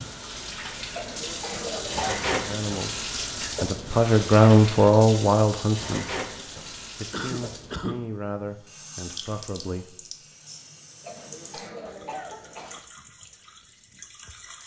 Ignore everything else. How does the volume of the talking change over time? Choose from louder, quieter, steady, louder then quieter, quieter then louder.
louder then quieter.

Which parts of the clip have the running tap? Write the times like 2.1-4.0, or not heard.
0.0-14.6.